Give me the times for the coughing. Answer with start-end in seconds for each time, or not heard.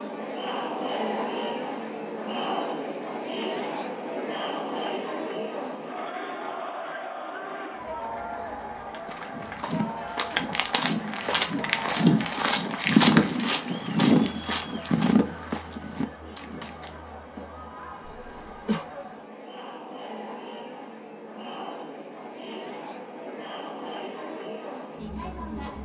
18.0-18.9.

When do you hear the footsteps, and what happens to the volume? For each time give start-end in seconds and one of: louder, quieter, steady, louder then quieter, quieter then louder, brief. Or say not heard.
9.0-16.9 louder then quieter.